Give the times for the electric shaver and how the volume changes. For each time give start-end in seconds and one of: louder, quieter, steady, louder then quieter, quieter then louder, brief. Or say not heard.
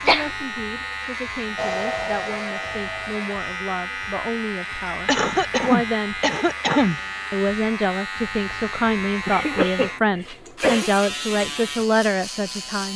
0.0-12.9 steady.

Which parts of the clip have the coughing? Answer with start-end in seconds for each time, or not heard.
0.1-0.5, 5.0-7.0, 9.2-10.9.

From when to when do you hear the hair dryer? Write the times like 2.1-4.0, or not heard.
1.6-3.5.